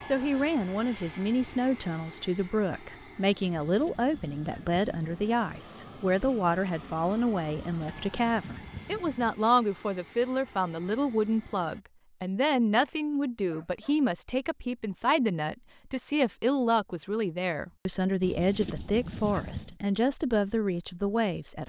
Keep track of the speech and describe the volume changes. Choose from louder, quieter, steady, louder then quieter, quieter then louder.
steady.